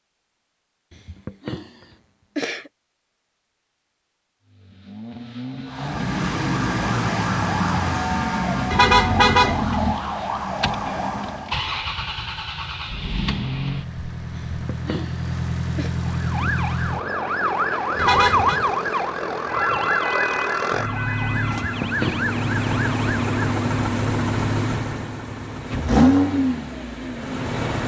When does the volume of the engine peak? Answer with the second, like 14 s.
26 s.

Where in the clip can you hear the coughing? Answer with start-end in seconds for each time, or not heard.
0.9-2.7, 14.3-15.9, 21.6-22.2.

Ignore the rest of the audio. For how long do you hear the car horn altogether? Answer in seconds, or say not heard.
2 s.